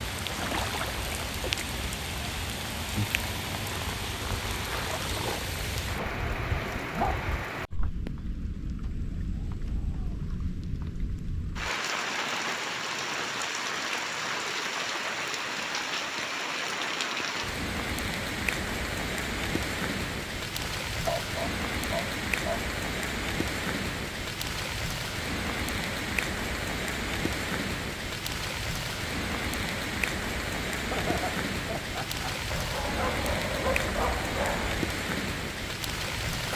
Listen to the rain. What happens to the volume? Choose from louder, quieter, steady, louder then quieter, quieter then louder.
steady.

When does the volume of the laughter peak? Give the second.
31 s.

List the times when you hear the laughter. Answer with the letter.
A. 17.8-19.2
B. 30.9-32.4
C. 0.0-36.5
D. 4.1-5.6
B.